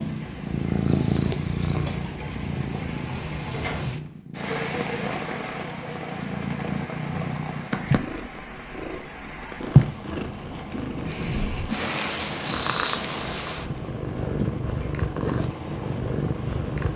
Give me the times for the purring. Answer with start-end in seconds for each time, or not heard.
0.0-16.9.